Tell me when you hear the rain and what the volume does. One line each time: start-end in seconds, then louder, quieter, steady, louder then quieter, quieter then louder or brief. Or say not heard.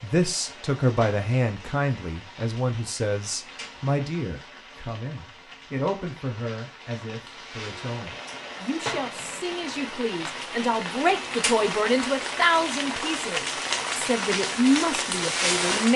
0.0-15.9 louder.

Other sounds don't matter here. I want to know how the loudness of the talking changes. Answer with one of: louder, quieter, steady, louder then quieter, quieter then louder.
quieter then louder.